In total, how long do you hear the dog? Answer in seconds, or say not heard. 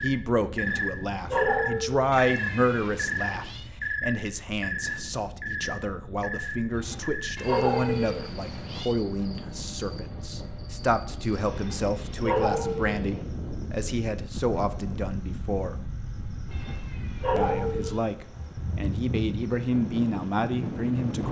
6 s.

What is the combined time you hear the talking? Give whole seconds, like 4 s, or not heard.
20 s.